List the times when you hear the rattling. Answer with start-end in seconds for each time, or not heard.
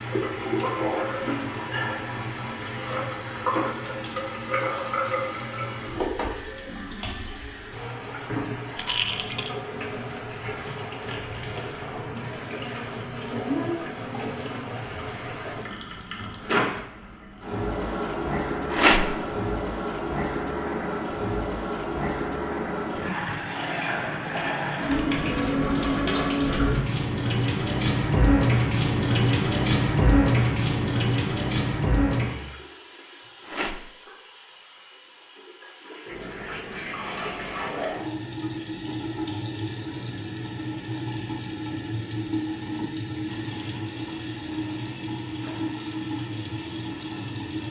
8.8-9.5, 18.7-19.1, 33.5-33.9.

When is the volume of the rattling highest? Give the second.
19 s.